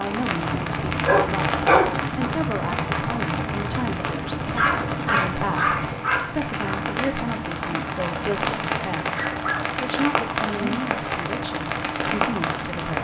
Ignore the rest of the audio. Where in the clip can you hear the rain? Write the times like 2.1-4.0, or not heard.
0.0-12.9.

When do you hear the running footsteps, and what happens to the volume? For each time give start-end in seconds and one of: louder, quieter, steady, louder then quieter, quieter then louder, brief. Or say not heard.
not heard.